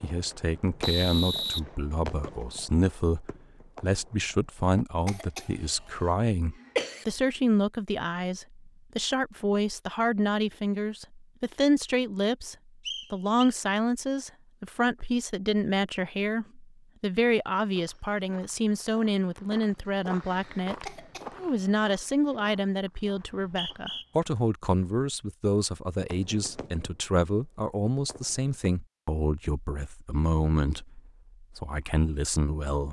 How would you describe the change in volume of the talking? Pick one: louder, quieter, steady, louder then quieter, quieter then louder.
steady.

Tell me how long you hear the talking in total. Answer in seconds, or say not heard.
33 s.